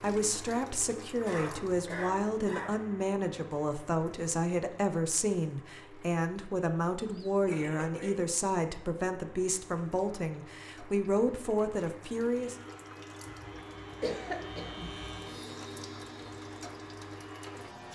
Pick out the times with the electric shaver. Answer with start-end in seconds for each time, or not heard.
12.4-17.9.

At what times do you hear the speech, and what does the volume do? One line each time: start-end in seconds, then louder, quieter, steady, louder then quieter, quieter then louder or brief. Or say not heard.
0.0-12.6 steady.